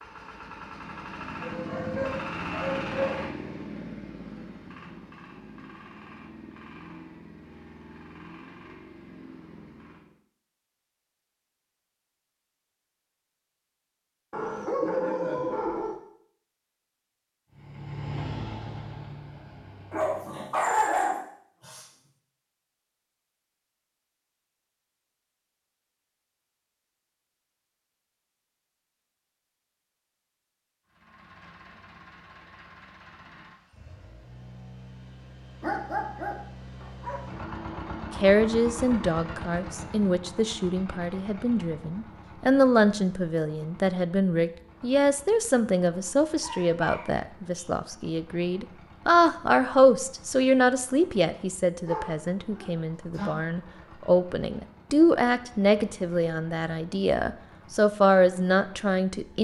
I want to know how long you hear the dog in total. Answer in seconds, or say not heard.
10 s.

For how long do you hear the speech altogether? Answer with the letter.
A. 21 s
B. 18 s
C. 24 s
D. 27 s
A.